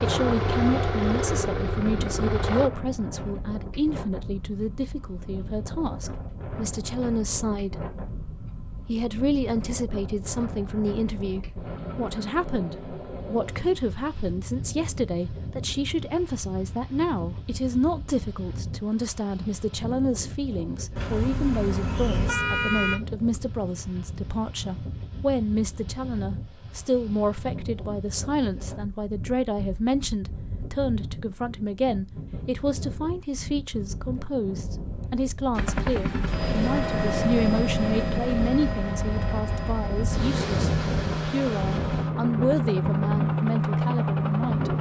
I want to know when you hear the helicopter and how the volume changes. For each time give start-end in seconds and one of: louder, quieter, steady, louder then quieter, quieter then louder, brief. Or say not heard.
0.0-2.7 brief
35.5-44.7 quieter then louder.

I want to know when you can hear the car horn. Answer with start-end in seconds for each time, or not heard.
20.9-22.9.